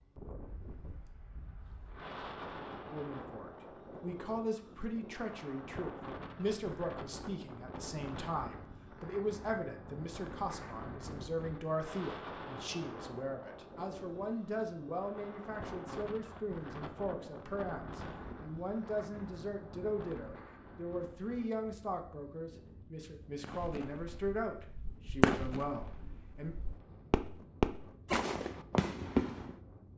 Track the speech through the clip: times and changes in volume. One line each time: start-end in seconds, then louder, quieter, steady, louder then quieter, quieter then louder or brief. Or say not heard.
2.9-26.6 steady.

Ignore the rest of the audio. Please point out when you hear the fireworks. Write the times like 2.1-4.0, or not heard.
23.4-29.6.